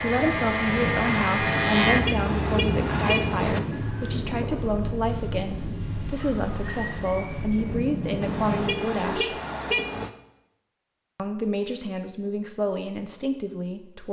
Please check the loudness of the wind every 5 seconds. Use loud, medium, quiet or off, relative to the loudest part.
loud, loud, off.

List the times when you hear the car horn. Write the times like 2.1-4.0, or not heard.
1.9-3.6, 8.2-10.1.